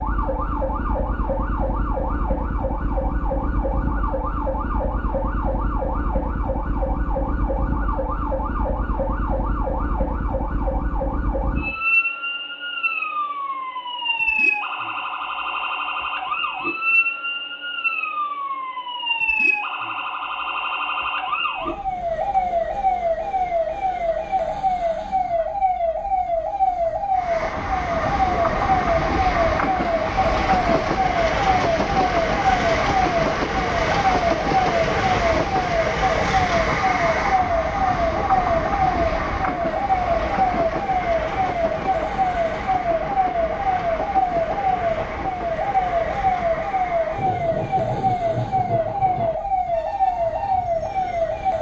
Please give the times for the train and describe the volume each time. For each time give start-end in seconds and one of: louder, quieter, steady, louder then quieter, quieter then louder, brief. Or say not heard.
27.1-51.5 quieter.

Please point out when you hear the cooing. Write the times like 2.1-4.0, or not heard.
not heard.